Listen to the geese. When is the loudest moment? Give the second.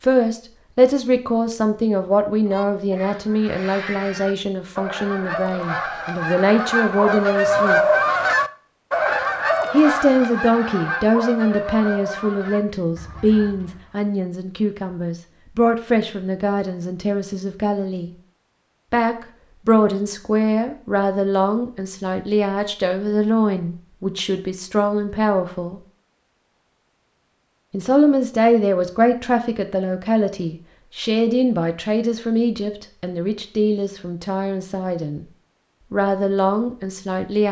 8 s.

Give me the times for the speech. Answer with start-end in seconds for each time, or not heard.
0.0-7.8, 9.7-18.1, 18.9-25.8, 27.7-35.2, 35.9-37.4.